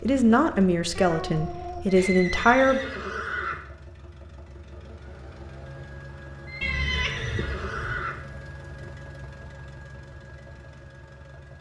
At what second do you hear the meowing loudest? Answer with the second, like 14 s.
7 s.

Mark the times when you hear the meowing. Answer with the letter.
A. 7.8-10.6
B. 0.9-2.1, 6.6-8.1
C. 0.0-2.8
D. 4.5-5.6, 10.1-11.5
B.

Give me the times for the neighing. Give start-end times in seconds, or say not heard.
1.9-3.6, 6.5-8.2.